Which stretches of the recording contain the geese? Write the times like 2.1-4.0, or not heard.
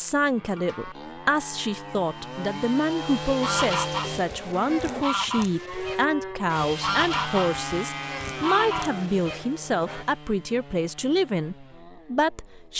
3.2-10.1.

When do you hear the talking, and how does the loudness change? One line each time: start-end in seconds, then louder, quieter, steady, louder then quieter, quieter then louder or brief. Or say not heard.
0.0-12.7 steady.